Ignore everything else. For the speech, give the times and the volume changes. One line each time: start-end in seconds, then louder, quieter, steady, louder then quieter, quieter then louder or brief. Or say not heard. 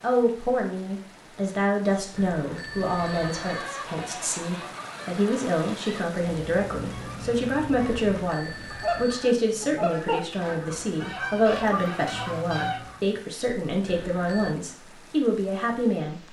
0.0-16.2 steady.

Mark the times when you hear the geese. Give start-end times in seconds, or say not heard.
2.9-13.1.